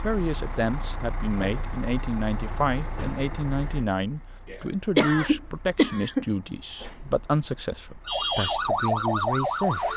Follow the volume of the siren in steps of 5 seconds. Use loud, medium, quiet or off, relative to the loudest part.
off, loud.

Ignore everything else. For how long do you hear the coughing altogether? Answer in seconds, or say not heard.
2 s.